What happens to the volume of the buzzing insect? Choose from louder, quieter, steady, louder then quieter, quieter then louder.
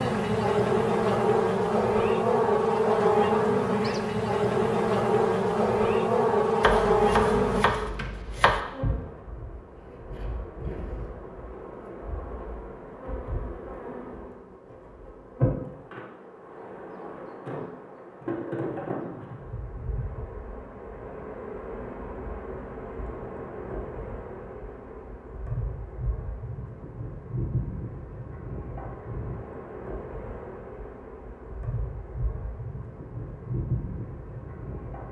quieter.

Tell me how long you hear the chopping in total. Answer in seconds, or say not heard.
2 s.